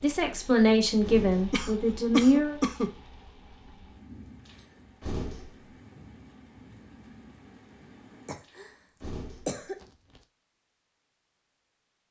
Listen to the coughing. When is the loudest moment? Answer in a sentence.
The loudest moment of the coughing is at 2 seconds.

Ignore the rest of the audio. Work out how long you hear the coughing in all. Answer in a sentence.
The coughing can be heard for 3 seconds in total.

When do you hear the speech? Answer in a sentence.
The speech can be heard from 0.0 to 2.6 s.